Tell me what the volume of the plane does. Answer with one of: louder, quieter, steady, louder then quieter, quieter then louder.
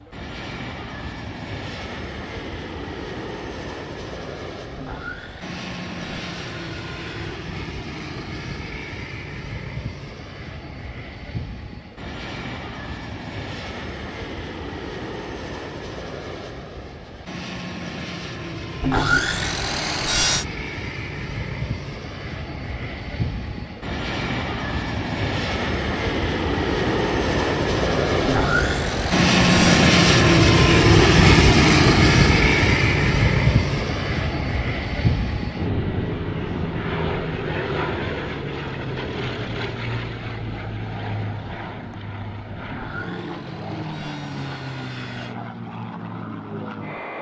louder then quieter.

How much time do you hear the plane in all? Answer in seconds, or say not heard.
47 s.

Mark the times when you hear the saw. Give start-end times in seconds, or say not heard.
4.8-7.5, 18.8-20.4, 28.2-29.9, 42.6-45.4.